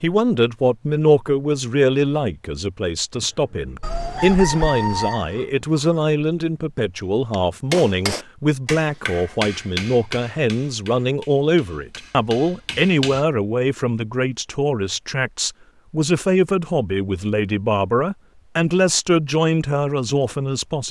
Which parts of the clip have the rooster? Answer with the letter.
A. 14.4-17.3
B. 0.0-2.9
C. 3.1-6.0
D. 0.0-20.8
C.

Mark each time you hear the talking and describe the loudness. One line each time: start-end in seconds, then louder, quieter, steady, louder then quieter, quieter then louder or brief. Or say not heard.
0.0-20.8 steady.